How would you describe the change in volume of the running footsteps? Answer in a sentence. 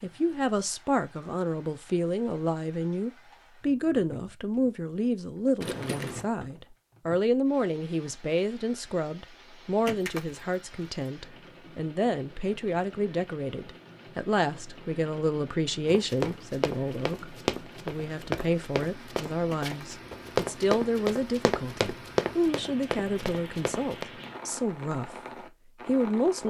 The volume of the running footsteps stays about the same.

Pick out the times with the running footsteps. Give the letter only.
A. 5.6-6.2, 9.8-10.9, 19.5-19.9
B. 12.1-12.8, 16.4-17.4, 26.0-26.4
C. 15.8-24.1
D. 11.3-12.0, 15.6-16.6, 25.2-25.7
C.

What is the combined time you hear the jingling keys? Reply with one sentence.
The jingling keys can be heard for 2 seconds in total.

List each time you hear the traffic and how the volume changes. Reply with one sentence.
The traffic can't be heard in this clip.